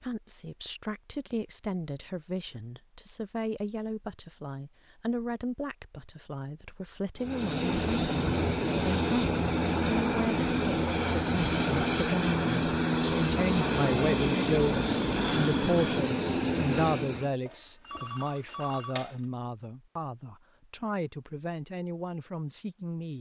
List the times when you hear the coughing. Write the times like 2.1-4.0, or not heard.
not heard.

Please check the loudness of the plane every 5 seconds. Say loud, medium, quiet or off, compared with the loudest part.
off, loud, loud, loud, off.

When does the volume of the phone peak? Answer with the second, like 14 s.
19 s.